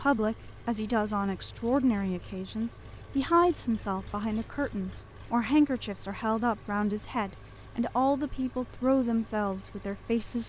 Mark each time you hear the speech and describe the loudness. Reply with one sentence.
You can hear the speech from 0.0 to 10.4 s, at a steady volume.